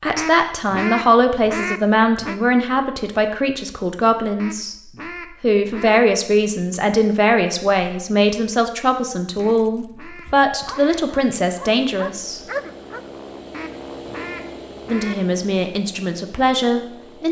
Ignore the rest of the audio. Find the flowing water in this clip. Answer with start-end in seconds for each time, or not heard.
not heard.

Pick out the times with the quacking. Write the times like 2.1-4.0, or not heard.
0.1-2.4, 4.3-6.0, 9.3-11.0, 13.5-15.2.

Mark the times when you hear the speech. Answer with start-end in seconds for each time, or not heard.
0.0-4.8, 5.4-12.4, 14.8-17.2.